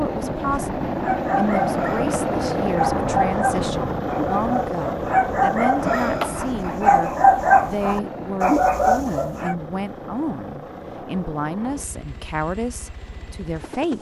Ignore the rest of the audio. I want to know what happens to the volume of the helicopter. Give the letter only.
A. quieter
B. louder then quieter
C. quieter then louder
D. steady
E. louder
A.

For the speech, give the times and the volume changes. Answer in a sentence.
You can hear the speech from 0.0 to 13.9 s, at a steady volume.